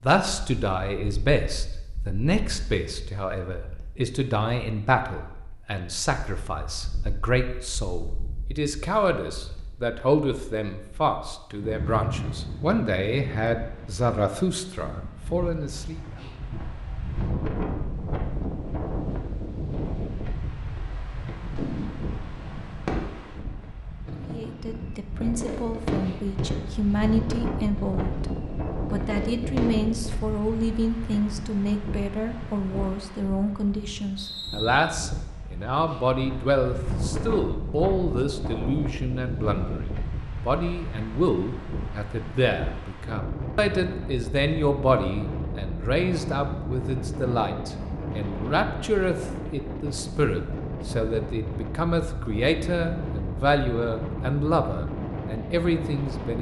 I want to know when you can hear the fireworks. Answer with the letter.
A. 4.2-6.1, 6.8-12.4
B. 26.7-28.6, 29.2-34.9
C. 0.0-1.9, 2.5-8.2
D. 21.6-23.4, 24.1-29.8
D.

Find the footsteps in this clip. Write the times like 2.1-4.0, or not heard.
not heard.